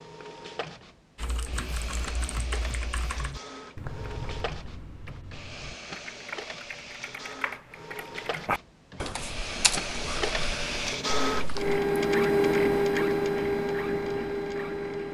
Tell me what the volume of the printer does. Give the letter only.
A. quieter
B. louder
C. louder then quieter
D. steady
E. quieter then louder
B.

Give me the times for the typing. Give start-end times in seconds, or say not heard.
1.1-11.8.